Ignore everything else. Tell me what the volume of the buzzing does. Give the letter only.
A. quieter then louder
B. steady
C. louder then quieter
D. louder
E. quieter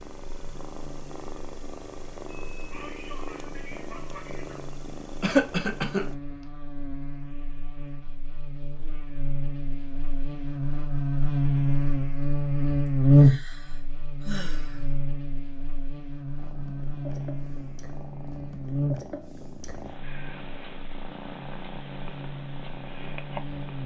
C.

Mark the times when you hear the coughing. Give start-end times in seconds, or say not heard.
5.2-6.0.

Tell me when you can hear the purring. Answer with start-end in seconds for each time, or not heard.
0.0-6.2, 16.4-23.8.